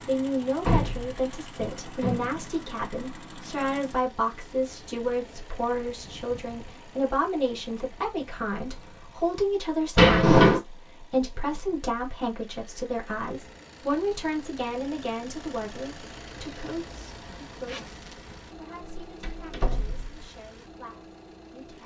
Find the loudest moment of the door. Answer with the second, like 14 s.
10 s.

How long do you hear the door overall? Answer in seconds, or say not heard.
4 s.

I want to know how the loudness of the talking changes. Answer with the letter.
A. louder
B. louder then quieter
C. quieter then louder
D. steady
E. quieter
E.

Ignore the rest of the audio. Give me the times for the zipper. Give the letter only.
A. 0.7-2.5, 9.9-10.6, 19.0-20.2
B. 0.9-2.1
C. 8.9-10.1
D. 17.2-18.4
D.